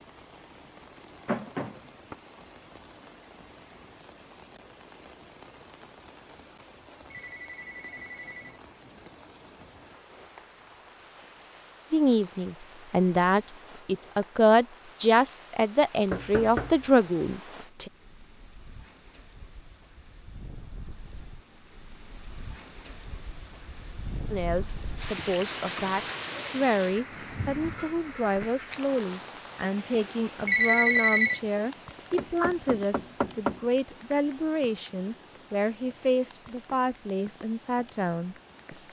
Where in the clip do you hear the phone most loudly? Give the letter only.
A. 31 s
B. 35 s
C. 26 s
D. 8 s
A.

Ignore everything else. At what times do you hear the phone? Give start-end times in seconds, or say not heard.
7.1-8.5, 30.4-31.4.